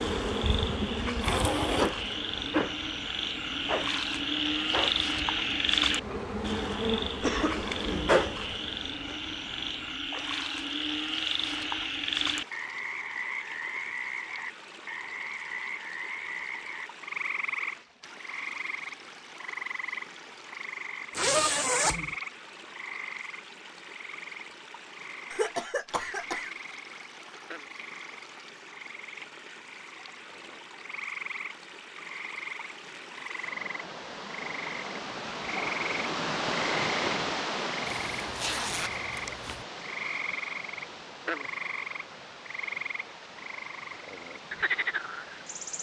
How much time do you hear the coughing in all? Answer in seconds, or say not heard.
2 s.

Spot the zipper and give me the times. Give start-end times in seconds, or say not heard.
1.2-1.9, 21.1-22.1, 37.9-39.6.